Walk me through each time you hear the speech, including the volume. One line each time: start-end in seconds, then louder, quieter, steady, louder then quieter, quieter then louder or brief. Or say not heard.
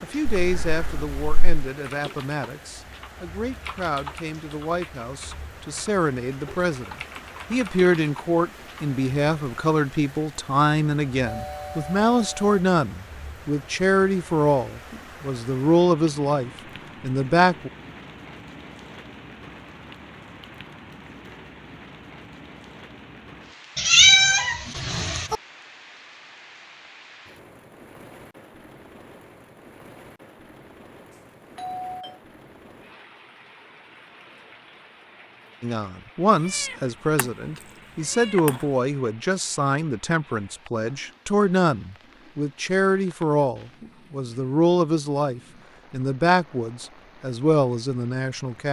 0.0-17.7 louder
35.6-48.6 steady.